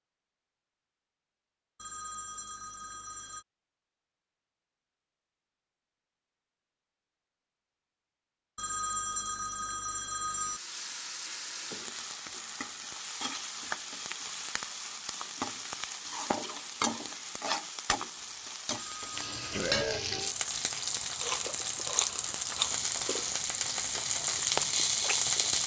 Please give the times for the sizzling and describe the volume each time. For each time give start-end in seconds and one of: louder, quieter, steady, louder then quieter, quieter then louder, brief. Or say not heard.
10.2-25.6 louder.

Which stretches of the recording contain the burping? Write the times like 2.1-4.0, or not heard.
19.5-20.0.